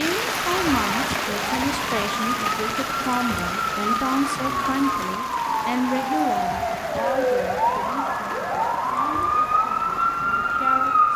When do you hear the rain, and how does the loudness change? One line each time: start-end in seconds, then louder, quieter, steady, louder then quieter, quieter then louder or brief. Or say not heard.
0.0-11.1 quieter.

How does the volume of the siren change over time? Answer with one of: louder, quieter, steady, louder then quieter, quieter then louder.
louder.